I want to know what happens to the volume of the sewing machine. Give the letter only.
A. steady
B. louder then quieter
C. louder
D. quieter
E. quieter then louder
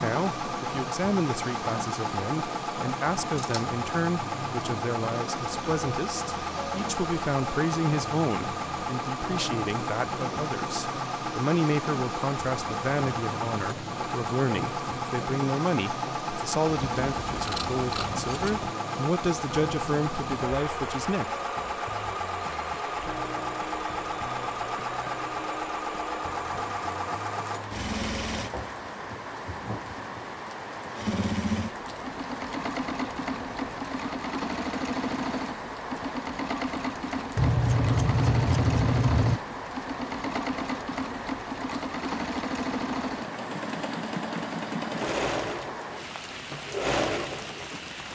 A.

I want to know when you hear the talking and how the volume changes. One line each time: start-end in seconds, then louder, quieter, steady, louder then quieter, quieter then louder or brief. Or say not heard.
0.0-21.4 steady.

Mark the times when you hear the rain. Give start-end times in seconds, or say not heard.
0.0-48.0.